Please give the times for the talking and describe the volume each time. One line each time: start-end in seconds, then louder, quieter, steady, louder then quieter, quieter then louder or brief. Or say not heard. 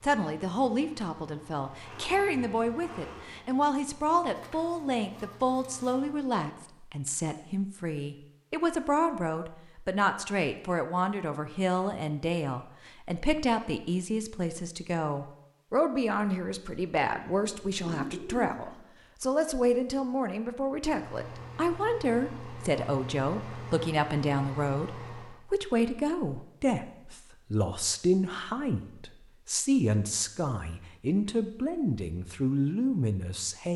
0.0-33.7 steady.